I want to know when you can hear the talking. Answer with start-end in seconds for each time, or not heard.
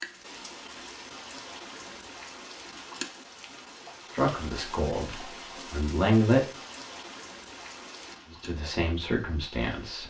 4.0-6.5, 8.3-10.0.